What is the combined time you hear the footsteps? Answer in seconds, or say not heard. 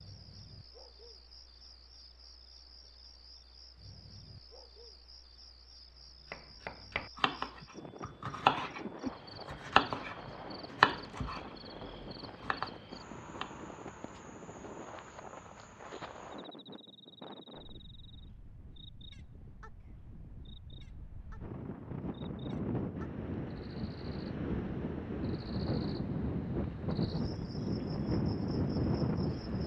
not heard.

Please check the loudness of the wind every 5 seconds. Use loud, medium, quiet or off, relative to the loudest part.
off, quiet, quiet, quiet, medium, loud.